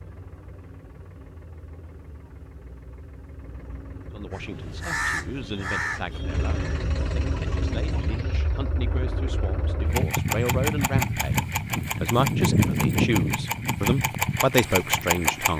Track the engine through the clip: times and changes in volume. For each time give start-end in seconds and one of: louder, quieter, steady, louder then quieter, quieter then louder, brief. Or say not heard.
0.0-15.5 louder.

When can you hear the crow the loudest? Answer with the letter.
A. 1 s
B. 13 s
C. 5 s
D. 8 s
C.